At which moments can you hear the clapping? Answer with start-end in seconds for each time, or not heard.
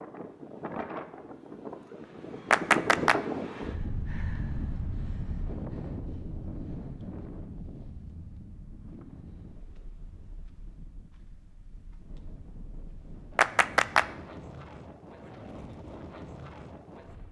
2.5-3.2, 13.3-14.1.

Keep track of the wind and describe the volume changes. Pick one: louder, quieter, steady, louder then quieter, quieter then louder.
quieter then louder.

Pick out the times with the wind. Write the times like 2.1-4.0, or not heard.
0.0-17.2.